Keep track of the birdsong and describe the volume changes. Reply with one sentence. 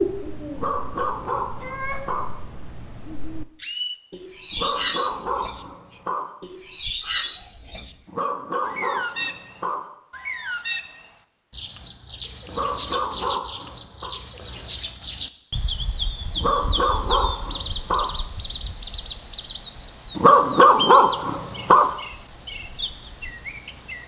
The loudness of the birdsong stays about the same.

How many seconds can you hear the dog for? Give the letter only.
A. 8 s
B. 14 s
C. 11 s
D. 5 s
C.